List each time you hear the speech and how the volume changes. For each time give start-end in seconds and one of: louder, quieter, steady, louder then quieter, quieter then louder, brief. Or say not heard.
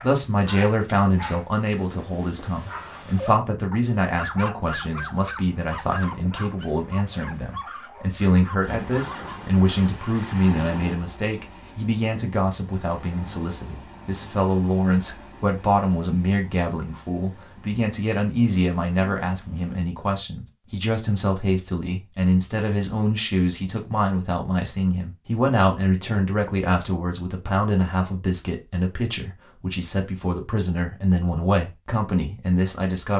0.0-33.1 steady.